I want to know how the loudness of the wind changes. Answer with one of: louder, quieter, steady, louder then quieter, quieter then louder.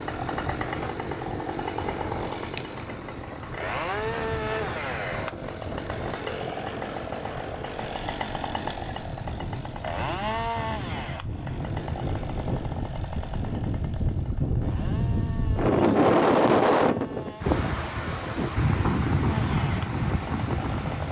louder.